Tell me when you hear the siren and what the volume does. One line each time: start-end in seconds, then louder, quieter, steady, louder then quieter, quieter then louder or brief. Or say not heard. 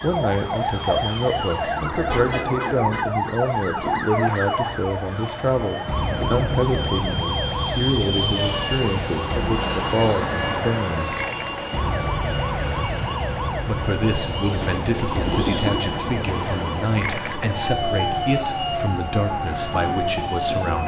0.0-20.8 steady.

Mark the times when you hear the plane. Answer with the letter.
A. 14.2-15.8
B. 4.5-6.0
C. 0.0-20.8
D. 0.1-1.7
C.